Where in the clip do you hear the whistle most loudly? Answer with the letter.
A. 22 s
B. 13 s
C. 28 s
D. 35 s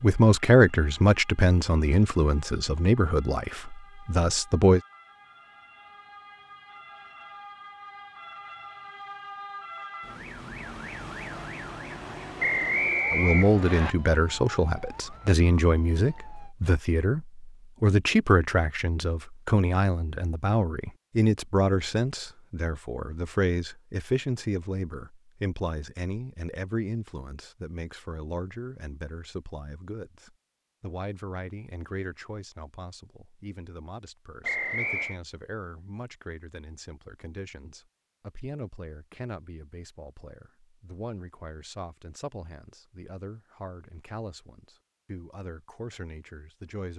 B.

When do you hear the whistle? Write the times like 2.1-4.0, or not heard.
12.4-13.9, 34.4-35.2.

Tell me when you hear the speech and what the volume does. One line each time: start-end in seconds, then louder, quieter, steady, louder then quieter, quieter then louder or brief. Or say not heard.
0.0-4.8 quieter
13.1-46.9 quieter.